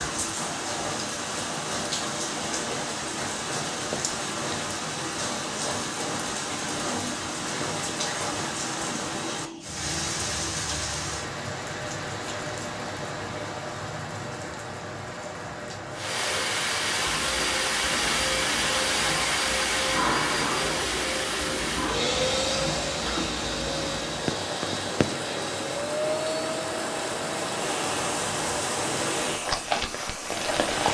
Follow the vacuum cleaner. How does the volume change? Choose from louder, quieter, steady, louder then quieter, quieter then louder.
quieter.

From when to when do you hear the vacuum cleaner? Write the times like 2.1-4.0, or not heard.
15.9-30.8.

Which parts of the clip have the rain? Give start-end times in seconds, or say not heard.
0.0-30.8.